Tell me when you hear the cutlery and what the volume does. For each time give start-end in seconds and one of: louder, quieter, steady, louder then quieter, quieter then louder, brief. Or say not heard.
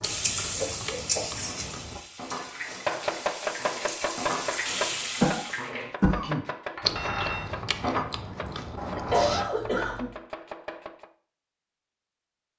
1.4-8.1 quieter then louder.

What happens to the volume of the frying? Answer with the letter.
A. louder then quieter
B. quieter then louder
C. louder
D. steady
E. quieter
B.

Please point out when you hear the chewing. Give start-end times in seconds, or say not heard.
0.0-2.0, 6.8-9.5.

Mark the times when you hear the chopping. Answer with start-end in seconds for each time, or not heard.
2.6-11.1.